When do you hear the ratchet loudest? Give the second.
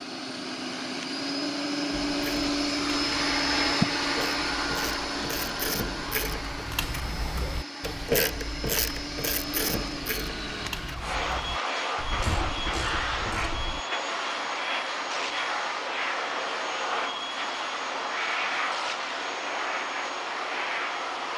8 s.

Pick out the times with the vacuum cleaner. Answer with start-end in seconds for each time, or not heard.
0.0-21.3.